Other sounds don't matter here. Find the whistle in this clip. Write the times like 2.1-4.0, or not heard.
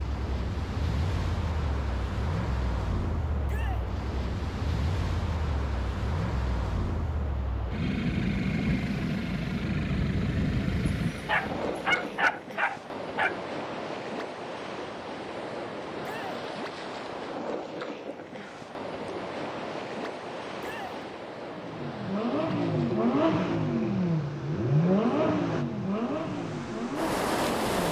not heard.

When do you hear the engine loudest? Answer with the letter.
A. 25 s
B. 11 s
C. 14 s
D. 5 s
A.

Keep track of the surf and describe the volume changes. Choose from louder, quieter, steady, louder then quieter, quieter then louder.
steady.